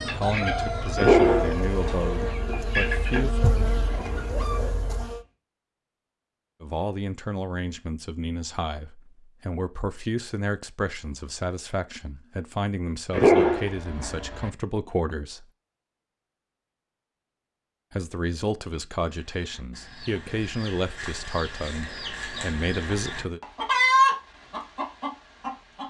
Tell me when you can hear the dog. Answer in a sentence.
You can hear the dog from 0.9 to 2.4 s and from 13.1 to 14.5 s.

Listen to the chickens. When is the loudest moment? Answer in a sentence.
The volume of the chickens peaks at 24 seconds.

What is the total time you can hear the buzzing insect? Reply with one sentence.
The buzzing insect can be heard for 5 seconds in total.